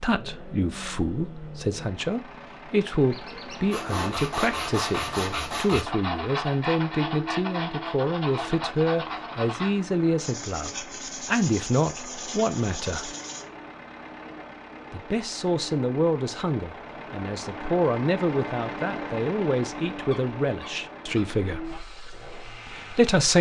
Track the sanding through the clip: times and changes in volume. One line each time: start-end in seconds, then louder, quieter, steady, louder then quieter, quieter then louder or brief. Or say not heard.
3.7-13.4 quieter.